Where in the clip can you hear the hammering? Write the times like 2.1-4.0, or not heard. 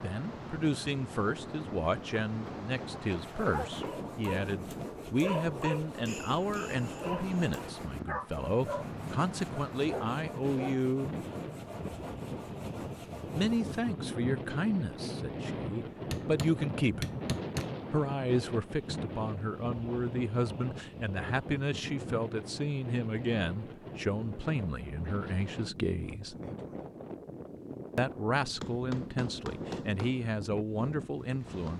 2.2-4.0, 16.1-17.8, 28.6-30.3.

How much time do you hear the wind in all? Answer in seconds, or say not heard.
32 s.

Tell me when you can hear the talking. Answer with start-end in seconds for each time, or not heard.
0.0-11.1, 13.2-17.1, 17.9-26.4, 27.9-31.7.